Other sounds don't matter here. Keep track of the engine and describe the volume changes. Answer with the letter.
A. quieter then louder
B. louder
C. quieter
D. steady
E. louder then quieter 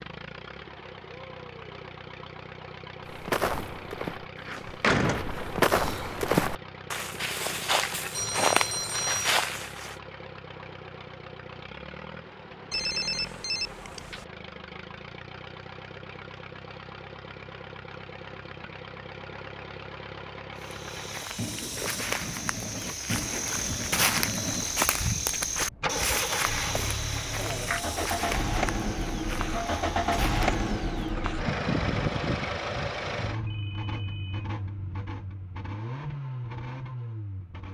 B.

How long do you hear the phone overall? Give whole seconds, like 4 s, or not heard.
4 s.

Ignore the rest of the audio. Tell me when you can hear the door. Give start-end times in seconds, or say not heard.
4.3-6.2.